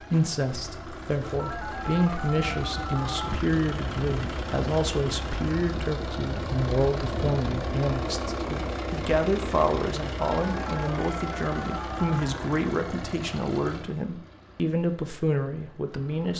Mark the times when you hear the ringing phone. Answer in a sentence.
The ringing phone can be heard from 1.4 to 3.4 s and from 10.2 to 12.2 s.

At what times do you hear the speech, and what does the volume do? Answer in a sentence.
The speech can be heard from 0.1 to 16.3 s, at a steady volume.